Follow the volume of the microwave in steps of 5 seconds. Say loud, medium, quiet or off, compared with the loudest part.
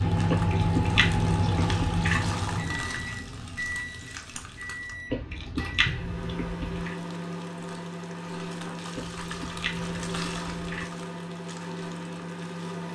loud, medium, medium.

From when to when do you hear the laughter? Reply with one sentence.
The laughter can't be heard in this clip.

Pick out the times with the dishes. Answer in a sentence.
The dishes can't be heard in this clip.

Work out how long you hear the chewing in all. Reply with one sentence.
The chewing can be heard for 6 seconds in total.